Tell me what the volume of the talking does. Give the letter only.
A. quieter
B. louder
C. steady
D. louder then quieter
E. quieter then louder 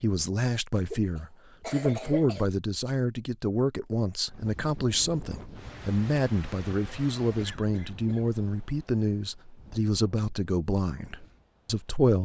C.